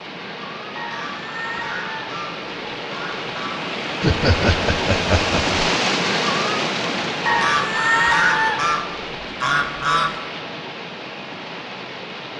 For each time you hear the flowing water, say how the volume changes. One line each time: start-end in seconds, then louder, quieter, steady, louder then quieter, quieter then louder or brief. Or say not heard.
0.0-12.3 louder then quieter.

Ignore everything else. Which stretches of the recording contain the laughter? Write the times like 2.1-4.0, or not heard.
4.0-5.6.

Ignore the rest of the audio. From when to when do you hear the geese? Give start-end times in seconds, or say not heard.
0.8-3.6, 7.2-10.2.